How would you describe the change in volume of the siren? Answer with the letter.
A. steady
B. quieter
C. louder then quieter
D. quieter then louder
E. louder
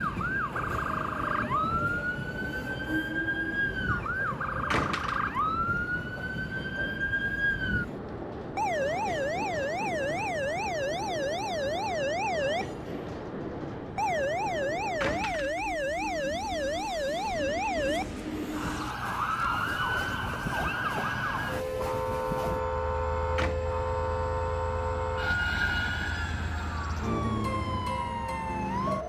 A.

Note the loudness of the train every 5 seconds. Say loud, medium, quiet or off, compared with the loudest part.
loud, loud, loud, loud, loud, medium.